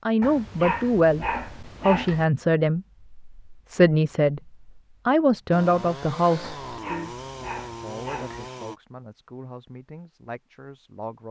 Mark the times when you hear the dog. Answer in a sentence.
The dog can be heard from 0.2 to 2.2 s and from 6.4 to 8.5 s.